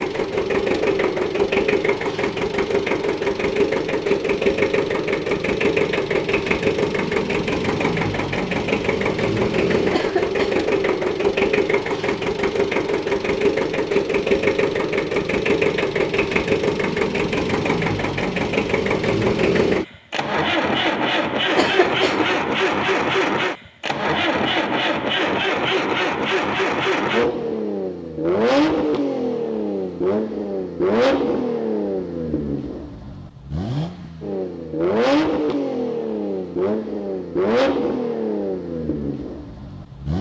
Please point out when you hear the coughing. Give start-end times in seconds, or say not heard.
9.9-10.7, 21.6-22.4.